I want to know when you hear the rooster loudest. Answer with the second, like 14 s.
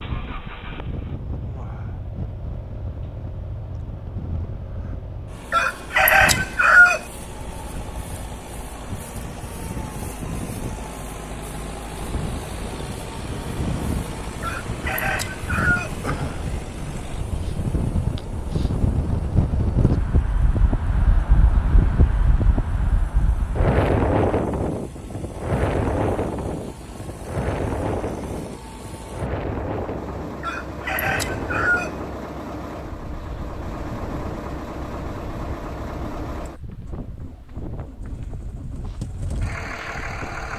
7 s.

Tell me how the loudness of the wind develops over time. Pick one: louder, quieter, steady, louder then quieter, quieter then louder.
louder then quieter.